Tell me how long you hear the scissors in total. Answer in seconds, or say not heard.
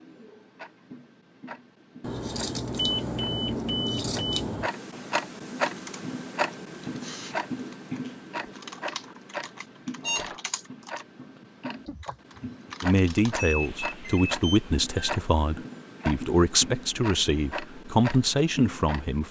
3 s.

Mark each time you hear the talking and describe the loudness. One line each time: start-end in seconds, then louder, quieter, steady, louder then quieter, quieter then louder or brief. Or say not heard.
12.8-19.2 steady.